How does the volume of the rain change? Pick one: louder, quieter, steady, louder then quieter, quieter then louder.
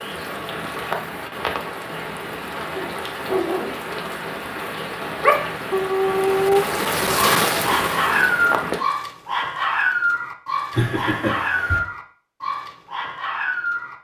louder.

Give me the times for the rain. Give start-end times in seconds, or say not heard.
0.0-8.8.